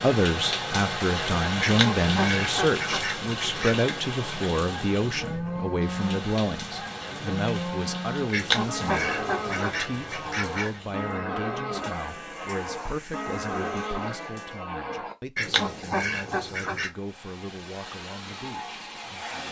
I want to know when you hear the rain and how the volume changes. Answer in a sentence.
The rain can be heard from 0.0 to 14.7 s, getting quieter.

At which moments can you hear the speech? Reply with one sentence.
You can hear the speech from 0.0 to 19.4 s.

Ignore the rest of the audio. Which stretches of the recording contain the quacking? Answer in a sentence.
The quacking can be heard from 1.6 to 3.8 s, from 8.3 to 10.8 s and from 15.3 to 16.9 s.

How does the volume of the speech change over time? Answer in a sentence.
The loudness of the speech goes down.